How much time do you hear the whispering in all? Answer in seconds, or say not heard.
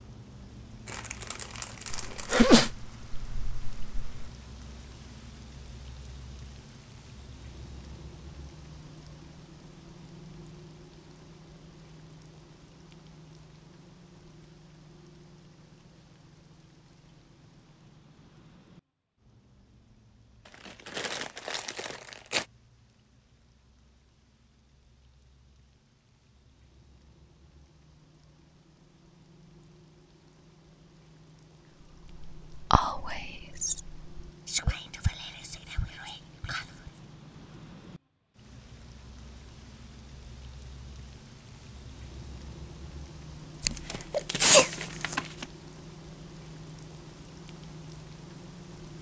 5 s.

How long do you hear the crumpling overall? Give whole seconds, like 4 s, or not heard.
6 s.